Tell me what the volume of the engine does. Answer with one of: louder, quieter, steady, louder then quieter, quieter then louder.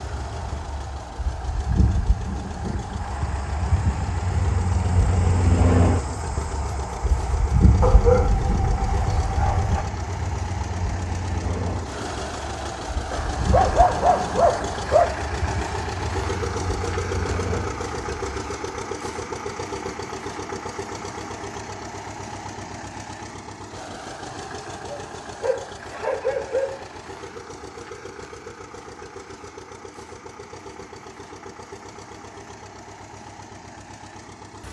louder then quieter.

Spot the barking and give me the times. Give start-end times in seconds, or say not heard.
7.8-9.8, 13.1-15.1, 24.9-26.9.